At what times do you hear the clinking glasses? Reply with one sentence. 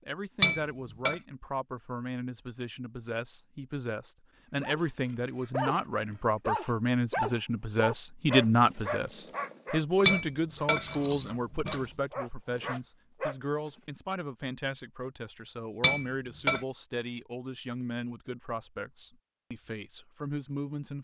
The clinking glasses can be heard from 0.4 to 1.1 s, from 10.1 to 11.8 s and from 15.8 to 16.6 s.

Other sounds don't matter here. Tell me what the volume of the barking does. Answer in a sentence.
The volume of the barking goes down, then up.